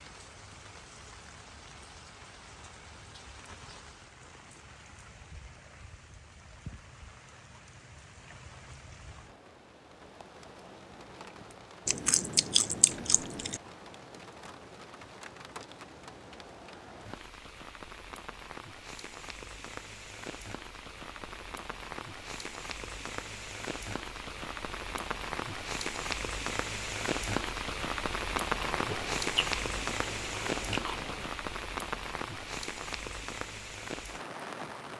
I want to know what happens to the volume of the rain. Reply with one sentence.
The loudness of the rain goes up.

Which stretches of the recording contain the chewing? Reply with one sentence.
You can hear the chewing from 11.8 to 13.6 s and from 28.6 to 31.2 s.